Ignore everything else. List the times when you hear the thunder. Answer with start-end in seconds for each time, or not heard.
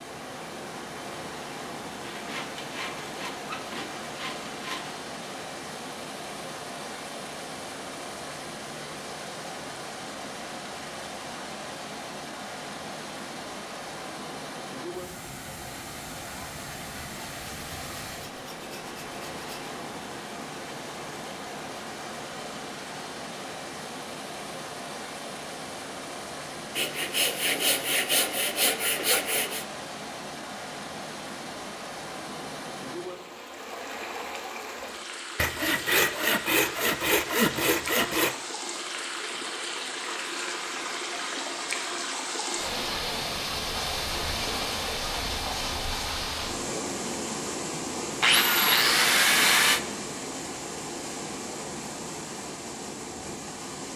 not heard.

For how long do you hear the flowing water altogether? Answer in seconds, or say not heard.
54 s.